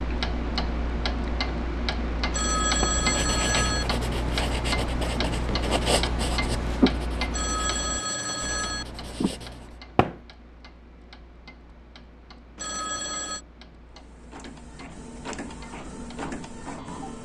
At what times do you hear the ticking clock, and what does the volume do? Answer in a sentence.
You can hear the ticking clock from 0.0 to 17.1 s, getting quieter.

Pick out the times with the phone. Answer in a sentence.
The phone can be heard from 2.3 to 3.9 s, from 7.3 to 8.8 s and from 12.6 to 13.4 s.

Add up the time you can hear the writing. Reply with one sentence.
You can hear the writing for 7 seconds altogether.